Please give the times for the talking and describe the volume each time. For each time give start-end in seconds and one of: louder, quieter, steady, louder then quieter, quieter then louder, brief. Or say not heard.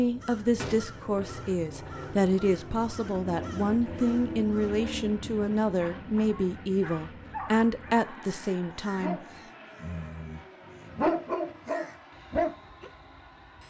0.0-9.2 steady.